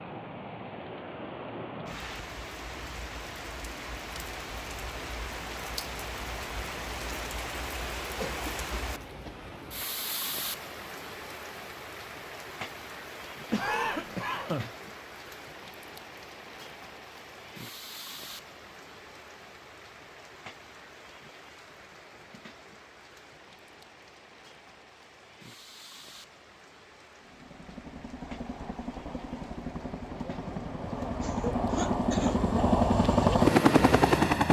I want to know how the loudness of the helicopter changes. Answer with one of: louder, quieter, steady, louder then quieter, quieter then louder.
louder.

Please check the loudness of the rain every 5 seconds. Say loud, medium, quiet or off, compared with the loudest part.
loud, loud, loud, medium, quiet, quiet, quiet.